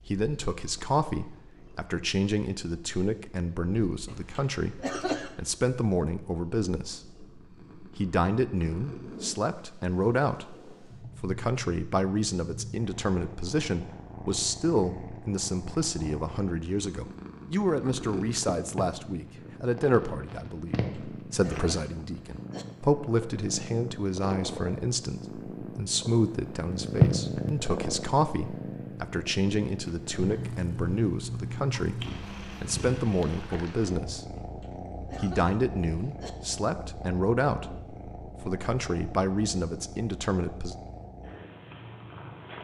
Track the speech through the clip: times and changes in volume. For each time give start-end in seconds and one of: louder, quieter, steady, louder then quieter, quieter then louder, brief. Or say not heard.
0.1-40.8 steady.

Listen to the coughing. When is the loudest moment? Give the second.
5 s.